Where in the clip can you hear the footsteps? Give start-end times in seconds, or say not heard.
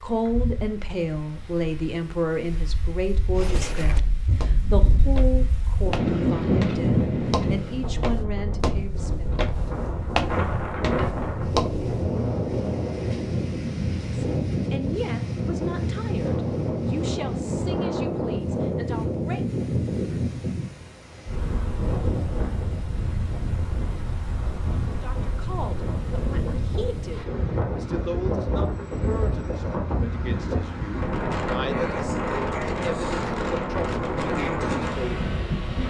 3.4-12.1.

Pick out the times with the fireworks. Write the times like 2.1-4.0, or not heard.
not heard.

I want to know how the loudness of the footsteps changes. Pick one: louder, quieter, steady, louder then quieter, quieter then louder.
louder.